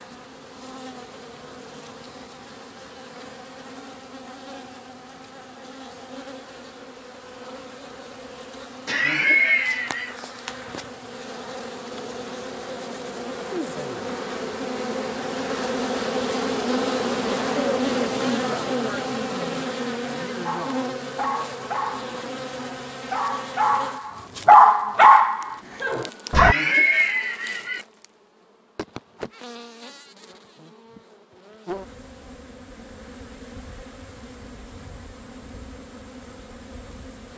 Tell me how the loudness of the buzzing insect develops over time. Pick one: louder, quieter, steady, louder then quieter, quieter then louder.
louder then quieter.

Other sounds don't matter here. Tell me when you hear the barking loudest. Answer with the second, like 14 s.
25 s.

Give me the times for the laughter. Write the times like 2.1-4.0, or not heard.
8.8-10.2, 26.4-27.9.